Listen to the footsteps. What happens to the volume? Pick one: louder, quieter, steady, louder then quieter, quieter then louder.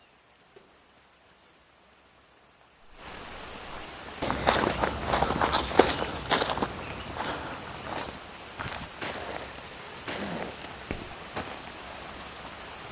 quieter.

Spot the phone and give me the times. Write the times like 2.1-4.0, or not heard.
not heard.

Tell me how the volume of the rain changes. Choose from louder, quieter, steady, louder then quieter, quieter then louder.
louder.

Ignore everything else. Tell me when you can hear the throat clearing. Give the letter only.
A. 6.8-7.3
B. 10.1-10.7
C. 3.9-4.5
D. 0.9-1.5
B.